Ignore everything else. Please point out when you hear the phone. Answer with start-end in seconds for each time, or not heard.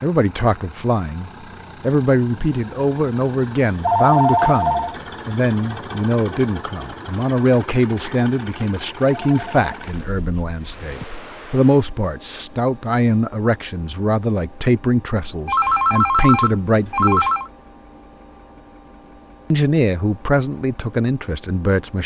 3.8-5.0, 9.1-10.9, 15.4-17.5.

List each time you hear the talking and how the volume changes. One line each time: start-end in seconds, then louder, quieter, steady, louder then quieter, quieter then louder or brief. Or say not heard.
0.0-17.3 steady
19.5-22.0 brief.